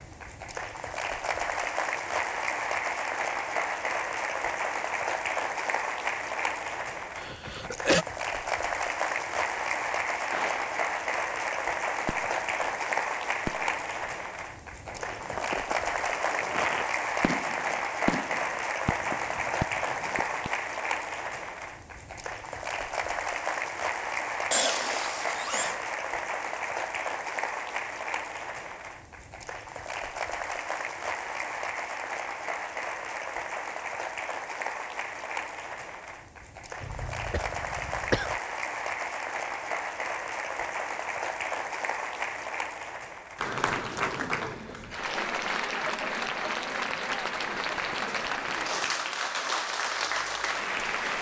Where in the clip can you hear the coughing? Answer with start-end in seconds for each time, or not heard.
7.2-8.1, 24.5-25.8, 36.8-38.4.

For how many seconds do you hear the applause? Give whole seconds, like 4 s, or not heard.
51 s.